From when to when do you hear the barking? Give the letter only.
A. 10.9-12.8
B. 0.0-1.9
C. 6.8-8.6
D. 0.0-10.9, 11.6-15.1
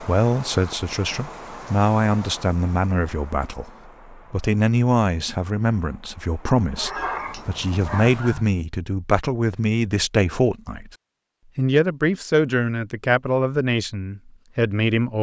C.